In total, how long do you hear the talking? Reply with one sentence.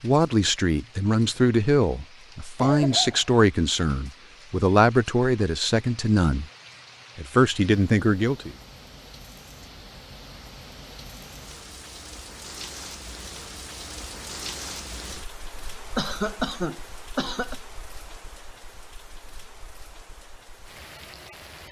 The talking can be heard for 8 seconds in total.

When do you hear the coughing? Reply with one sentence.
You can hear the coughing from 2.5 to 3.3 s and from 15.9 to 17.6 s.